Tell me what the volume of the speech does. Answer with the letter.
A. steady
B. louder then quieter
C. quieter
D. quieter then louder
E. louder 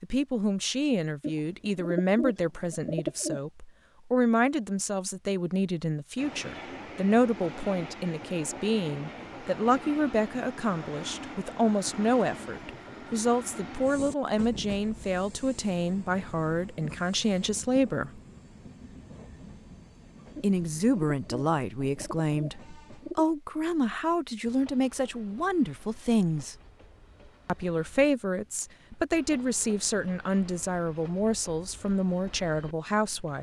A.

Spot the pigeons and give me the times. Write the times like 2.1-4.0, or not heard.
1.2-3.4, 20.4-23.2.